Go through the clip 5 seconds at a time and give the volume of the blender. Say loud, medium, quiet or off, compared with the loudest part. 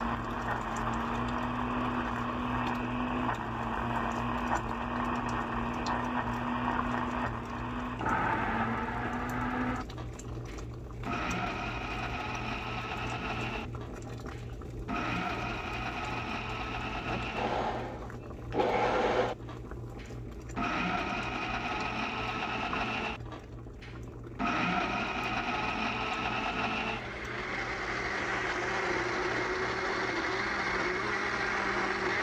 loud, loud, medium, loud, loud, loud, loud.